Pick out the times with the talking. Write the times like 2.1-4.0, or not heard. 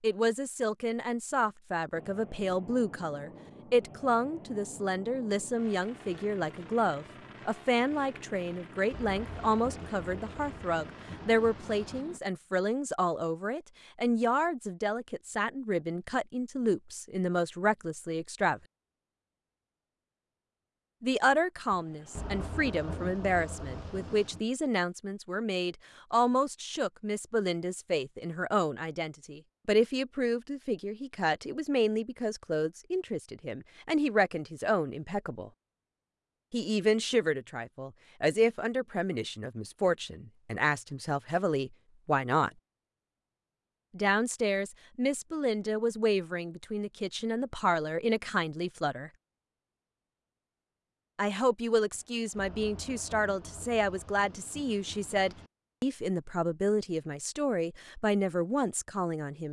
0.0-18.6, 21.0-35.5, 36.5-42.5, 43.9-49.1, 51.1-59.4.